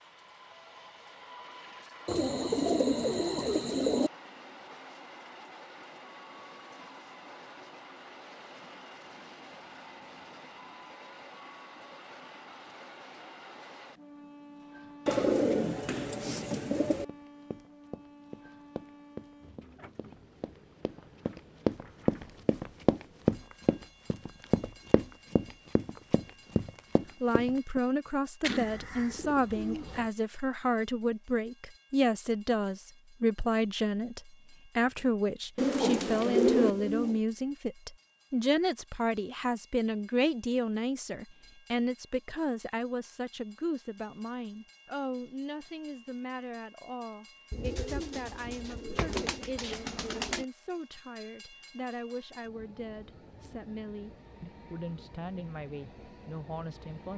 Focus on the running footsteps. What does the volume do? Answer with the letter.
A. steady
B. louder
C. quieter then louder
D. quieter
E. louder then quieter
E.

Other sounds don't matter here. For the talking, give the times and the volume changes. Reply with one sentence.
The talking can be heard from 27.2 to 57.1 s, getting quieter.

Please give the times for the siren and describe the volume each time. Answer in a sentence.
You can't hear the siren here.